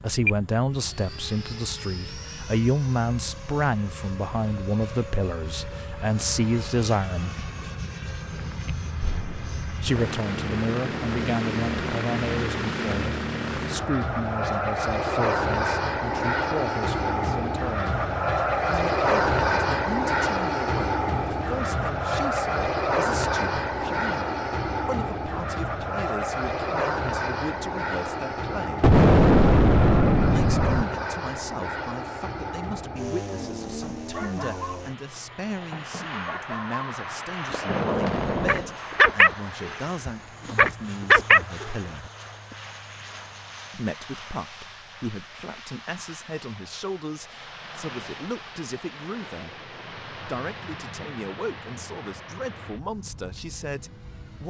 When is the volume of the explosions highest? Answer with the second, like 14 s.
29 s.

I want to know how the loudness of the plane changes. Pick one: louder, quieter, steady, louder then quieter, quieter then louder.
louder then quieter.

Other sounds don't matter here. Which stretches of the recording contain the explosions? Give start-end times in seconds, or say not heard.
9.0-9.8, 28.8-30.9, 37.5-38.8.